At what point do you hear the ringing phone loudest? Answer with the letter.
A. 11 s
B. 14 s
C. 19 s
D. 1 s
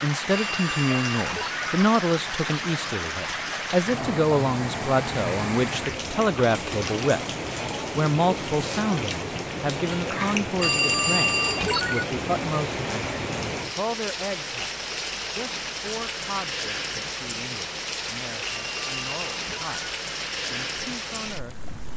A.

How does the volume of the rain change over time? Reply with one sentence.
The loudness of the rain stays about the same.